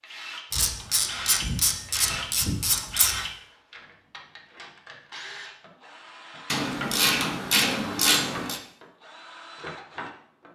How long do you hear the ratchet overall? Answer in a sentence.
The ratchet can be heard for 5 seconds in total.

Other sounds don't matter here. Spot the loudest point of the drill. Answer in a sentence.
The loudest moment of the drill is at 2 seconds.